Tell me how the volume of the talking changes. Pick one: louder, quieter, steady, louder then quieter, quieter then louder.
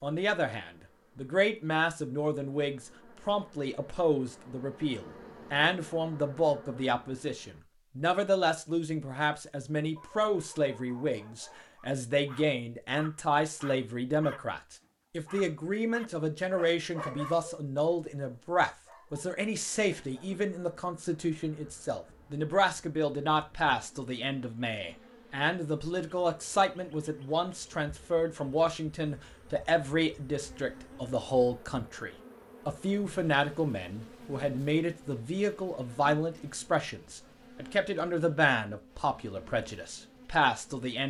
steady.